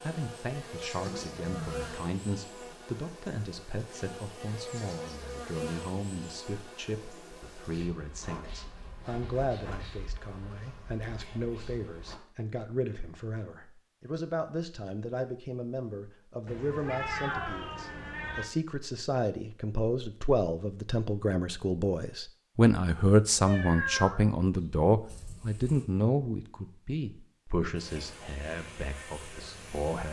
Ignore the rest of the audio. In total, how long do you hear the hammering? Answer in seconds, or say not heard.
not heard.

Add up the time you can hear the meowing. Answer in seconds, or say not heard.
4 s.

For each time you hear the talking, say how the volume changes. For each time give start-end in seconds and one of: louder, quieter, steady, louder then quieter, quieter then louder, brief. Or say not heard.
0.0-30.0 louder.